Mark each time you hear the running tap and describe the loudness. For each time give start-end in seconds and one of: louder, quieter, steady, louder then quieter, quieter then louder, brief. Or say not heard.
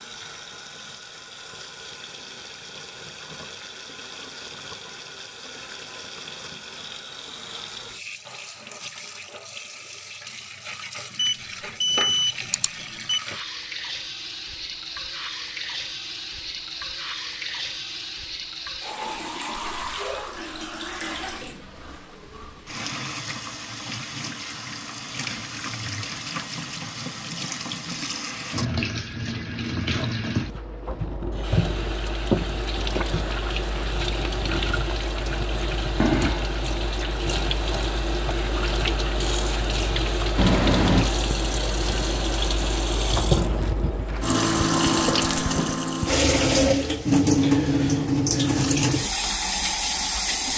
0.0-50.5 louder.